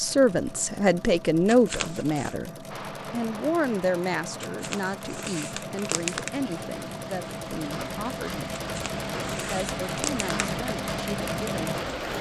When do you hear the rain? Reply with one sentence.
The rain can be heard from 2.7 to 12.1 s.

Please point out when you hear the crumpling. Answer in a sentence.
The crumpling can be heard from 1.4 to 2.4 s, from 4.4 to 6.3 s and from 8.6 to 10.3 s.